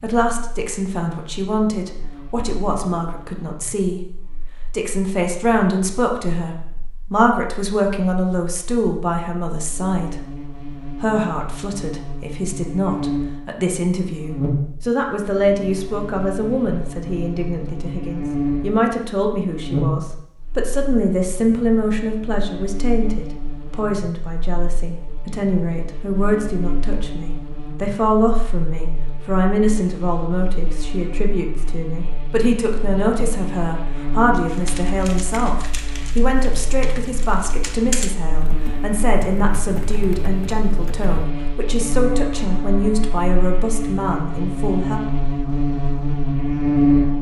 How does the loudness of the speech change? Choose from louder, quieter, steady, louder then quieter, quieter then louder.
steady.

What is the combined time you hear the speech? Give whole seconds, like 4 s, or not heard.
44 s.